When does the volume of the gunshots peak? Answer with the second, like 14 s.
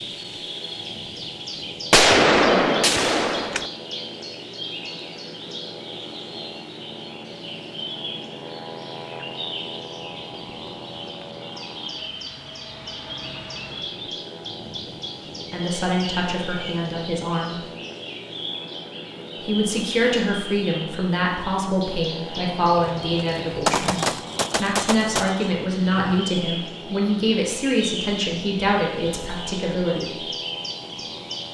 2 s.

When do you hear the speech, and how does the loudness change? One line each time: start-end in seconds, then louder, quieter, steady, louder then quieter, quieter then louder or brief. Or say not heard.
15.5-17.6 brief
19.4-30.2 steady.